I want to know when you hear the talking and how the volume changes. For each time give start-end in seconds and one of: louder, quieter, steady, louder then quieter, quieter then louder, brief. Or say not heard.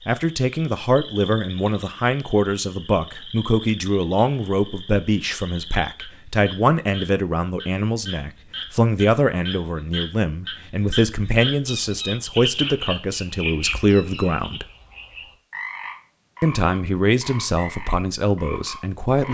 0.1-14.7 steady
16.4-19.2 brief.